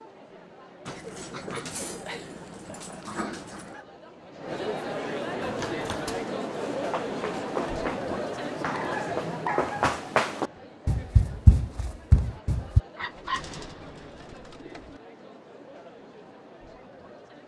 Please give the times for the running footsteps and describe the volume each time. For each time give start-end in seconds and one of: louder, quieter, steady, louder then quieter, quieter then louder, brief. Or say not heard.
5.4-12.8 louder.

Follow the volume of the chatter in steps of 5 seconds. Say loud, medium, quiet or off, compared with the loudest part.
medium, loud, quiet, quiet.